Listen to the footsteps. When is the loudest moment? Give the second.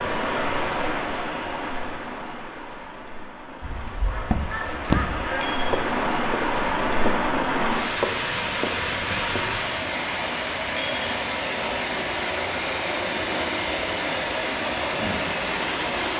5 s.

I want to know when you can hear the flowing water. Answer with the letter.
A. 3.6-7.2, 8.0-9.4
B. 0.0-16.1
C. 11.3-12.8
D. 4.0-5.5
B.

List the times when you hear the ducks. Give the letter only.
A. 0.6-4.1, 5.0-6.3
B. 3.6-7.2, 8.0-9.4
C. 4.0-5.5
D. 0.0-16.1
C.